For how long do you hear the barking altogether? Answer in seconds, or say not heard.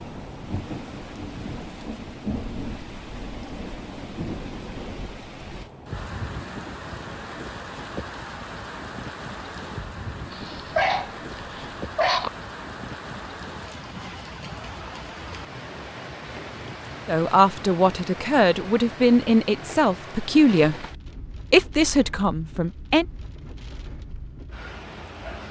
2 s.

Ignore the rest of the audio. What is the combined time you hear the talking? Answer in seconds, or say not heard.
5 s.